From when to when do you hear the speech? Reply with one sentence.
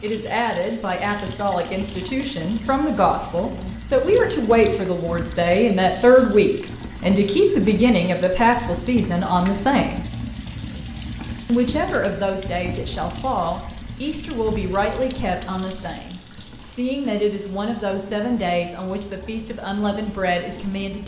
The speech can be heard from 0.0 to 10.1 s and from 11.4 to 21.0 s.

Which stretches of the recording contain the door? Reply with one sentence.
The door can't be heard in this clip.